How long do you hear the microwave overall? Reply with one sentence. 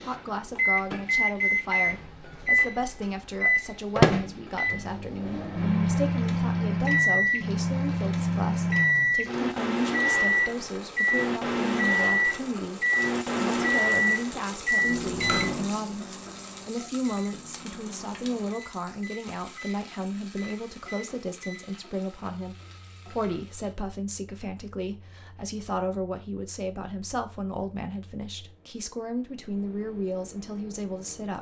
You can hear the microwave for 31 seconds altogether.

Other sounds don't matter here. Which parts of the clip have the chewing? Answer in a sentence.
You can't hear the chewing here.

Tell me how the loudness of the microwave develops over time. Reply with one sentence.
The loudness of the microwave goes down.